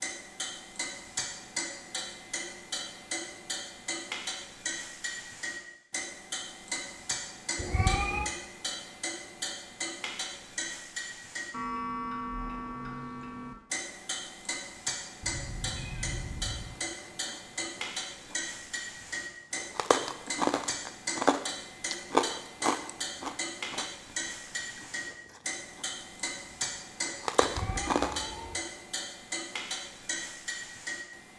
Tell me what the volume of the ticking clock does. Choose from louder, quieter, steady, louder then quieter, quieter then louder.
steady.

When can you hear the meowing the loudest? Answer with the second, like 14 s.
8 s.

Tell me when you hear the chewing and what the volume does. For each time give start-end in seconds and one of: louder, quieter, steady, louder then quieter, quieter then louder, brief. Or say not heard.
16.8-18.4 brief
19.1-23.9 louder then quieter
24.6-25.9 brief
27.1-28.2 brief.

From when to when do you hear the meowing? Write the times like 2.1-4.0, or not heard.
7.5-8.3, 15.2-16.8, 27.4-28.6.